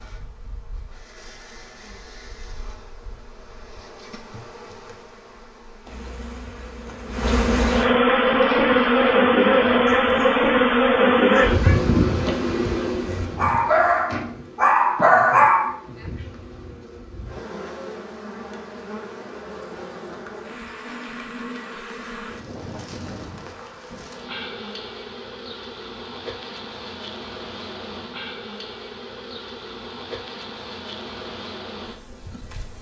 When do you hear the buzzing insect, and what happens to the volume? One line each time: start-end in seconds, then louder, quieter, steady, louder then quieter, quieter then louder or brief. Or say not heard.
0.0-32.7 louder then quieter.